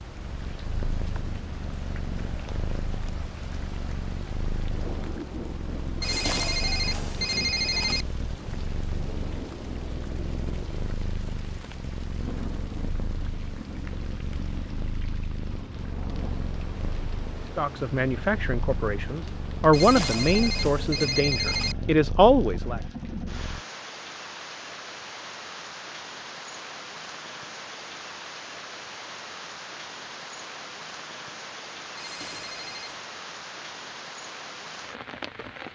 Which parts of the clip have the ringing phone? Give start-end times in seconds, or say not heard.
6.0-8.1, 19.7-21.8, 31.9-33.0.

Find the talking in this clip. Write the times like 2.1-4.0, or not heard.
17.6-22.8.